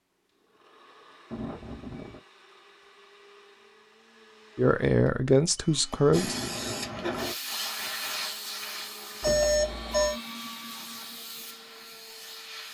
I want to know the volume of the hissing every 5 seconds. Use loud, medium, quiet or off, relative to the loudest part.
off, loud, medium.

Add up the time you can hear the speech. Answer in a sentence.
You can hear the speech for 2 seconds altogether.